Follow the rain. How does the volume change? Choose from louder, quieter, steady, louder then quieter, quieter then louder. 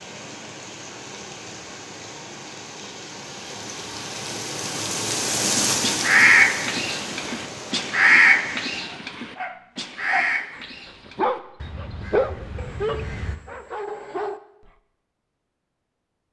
louder then quieter.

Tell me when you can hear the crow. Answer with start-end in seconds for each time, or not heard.
5.7-13.4.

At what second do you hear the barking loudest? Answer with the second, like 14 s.
12 s.